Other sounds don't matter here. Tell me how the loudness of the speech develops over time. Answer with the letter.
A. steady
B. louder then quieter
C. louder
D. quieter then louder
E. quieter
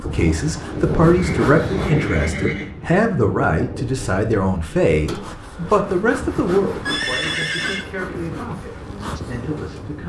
E.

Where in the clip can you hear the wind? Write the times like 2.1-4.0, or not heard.
0.0-10.0.